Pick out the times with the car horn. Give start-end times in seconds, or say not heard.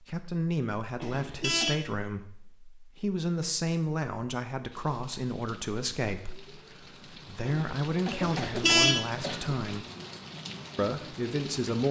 1.0-1.8, 8.2-9.1.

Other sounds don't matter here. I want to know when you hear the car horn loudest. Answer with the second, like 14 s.
9 s.